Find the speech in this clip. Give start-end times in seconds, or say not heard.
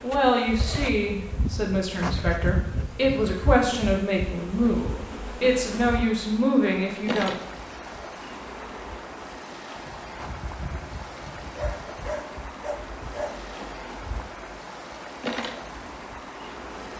0.0-7.4.